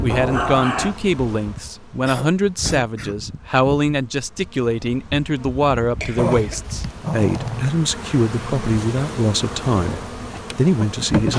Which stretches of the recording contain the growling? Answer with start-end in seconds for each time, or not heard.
0.1-0.9, 6.2-7.8.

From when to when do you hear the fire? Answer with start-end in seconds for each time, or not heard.
not heard.